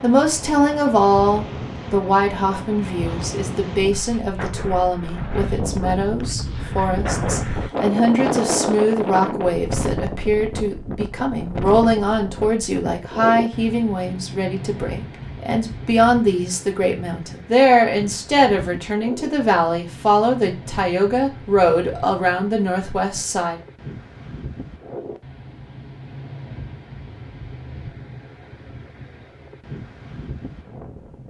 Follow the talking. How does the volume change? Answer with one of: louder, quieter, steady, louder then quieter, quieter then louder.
steady.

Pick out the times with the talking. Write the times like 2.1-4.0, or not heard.
0.0-23.6.